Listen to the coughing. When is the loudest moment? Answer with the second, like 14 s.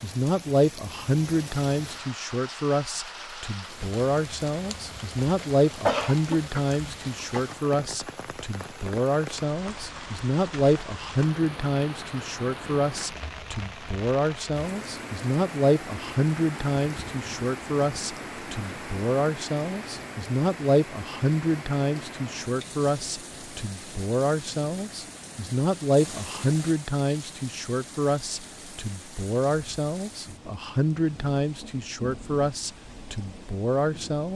6 s.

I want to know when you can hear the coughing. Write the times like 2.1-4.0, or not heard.
5.4-7.5.